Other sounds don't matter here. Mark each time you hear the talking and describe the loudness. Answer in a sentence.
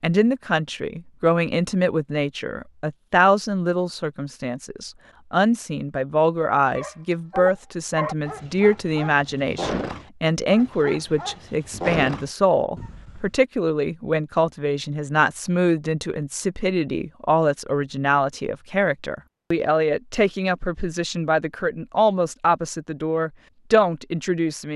You can hear the talking from 0.0 to 24.7 s, at a steady volume.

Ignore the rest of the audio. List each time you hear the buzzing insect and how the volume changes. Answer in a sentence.
The buzzing insect can't be heard in this clip.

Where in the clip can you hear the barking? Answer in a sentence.
You can hear the barking from 6.5 to 13.3 s.